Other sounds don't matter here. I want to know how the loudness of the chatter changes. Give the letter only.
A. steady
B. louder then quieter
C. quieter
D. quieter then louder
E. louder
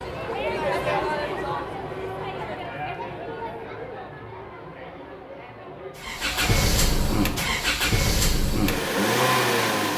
C.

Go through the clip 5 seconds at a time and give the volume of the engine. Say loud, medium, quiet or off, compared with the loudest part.
off, loud.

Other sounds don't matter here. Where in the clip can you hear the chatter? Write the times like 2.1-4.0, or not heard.
0.0-7.8.